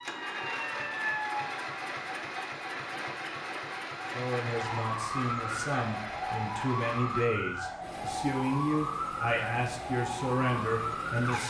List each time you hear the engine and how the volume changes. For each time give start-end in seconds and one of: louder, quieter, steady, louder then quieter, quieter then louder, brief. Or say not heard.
0.0-11.4 quieter.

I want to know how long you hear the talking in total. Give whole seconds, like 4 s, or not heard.
7 s.